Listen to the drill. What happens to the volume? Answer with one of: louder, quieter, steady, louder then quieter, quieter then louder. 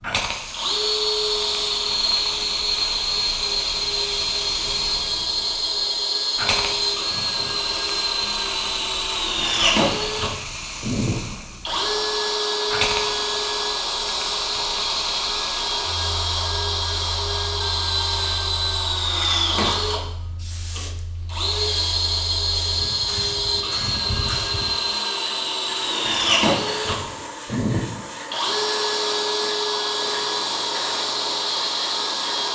steady.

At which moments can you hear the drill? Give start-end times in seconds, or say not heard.
0.0-32.5.